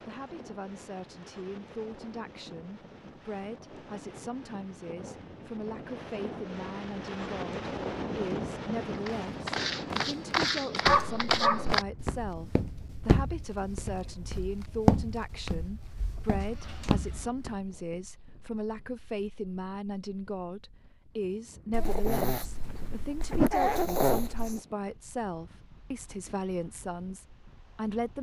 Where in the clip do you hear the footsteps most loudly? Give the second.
15 s.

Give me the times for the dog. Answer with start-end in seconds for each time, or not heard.
10.8-11.8, 21.7-24.6.